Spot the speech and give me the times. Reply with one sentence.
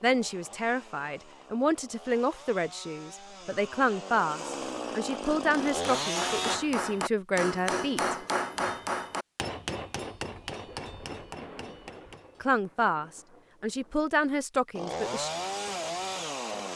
The speech can be heard from 0.0 to 8.2 s and from 12.4 to 15.3 s.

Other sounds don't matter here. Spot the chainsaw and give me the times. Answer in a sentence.
You can hear the chainsaw from 0.0 to 6.6 s and from 14.8 to 16.7 s.